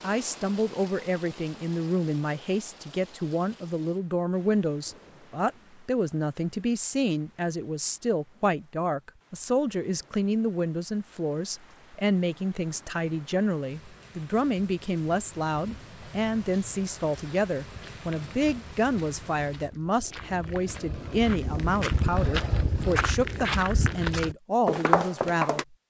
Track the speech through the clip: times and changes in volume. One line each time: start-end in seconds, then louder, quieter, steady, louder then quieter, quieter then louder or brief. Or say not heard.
0.0-25.6 steady.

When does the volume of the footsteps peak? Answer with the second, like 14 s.
25 s.